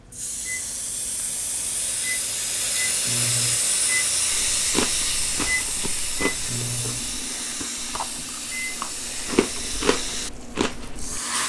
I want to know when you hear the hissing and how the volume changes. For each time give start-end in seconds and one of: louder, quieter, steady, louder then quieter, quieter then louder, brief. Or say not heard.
0.0-11.4 louder then quieter.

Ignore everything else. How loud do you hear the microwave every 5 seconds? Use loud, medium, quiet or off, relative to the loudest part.
loud, loud, medium.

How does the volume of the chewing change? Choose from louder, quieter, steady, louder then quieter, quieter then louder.
quieter then louder.